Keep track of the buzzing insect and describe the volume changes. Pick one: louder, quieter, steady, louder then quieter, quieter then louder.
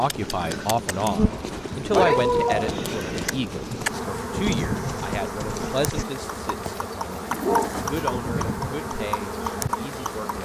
steady.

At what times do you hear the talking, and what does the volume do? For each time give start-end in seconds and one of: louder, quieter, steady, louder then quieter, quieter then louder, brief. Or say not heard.
0.0-10.4 quieter.